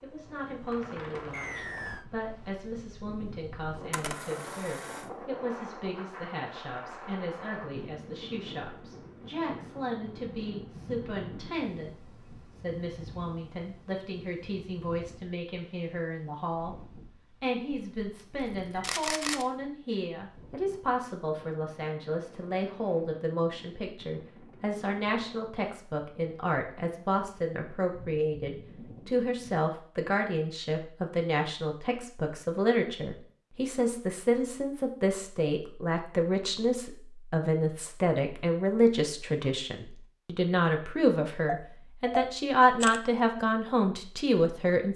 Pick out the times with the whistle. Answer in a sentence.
The whistle can be heard from 1.3 to 2.0 s.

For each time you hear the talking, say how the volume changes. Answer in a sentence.
You can hear the talking from 0.0 to 44.9 s, getting louder.